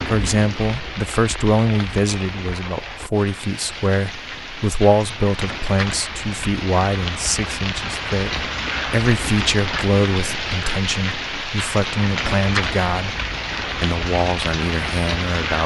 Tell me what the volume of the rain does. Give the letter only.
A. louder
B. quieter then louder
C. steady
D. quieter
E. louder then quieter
A.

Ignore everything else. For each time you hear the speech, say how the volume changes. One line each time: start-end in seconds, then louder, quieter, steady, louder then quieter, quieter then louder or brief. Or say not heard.
0.1-15.6 steady.